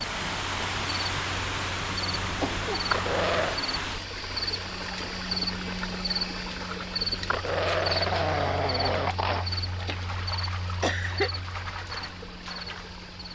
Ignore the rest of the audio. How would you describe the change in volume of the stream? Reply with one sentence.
The volume of the stream goes down.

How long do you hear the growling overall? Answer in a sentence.
You can hear the growling for 3 seconds altogether.